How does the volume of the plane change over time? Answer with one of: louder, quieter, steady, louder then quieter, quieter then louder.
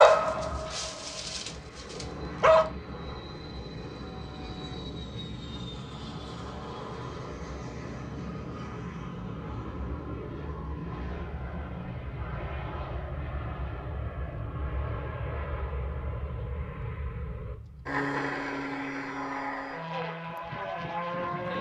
louder.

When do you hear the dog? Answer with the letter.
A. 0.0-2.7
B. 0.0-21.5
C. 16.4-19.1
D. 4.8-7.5
A.